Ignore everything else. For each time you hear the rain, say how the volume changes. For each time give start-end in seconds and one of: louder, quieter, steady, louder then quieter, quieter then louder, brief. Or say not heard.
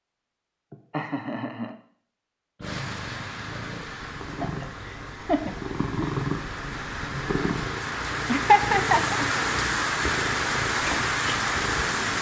2.6-12.1 louder.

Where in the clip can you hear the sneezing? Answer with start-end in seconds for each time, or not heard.
not heard.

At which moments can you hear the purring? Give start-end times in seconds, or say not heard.
2.5-12.1.